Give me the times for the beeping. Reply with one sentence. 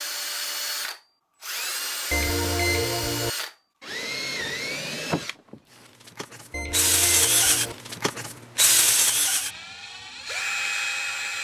The beeping can be heard from 2.1 to 3.3 s and from 6.5 to 7.8 s.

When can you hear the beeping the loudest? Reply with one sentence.
The loudest moment of the beeping is at 3 seconds.